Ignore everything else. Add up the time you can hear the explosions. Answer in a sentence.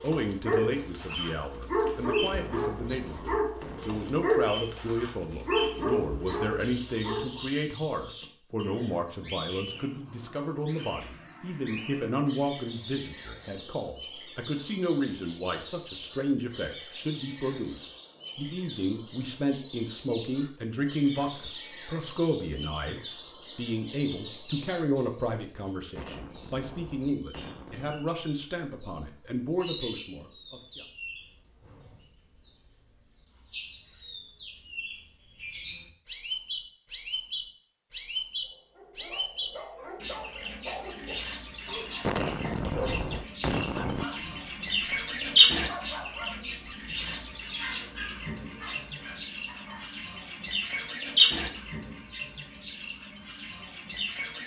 The explosions can be heard for 6 seconds in total.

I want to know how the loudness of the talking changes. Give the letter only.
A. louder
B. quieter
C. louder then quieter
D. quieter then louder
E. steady
E.